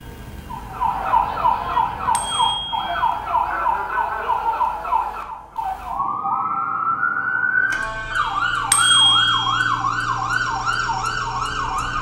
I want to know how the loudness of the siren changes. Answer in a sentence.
The loudness of the siren stays about the same.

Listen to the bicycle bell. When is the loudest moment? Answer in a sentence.
The loudest moment of the bicycle bell is at 9 seconds.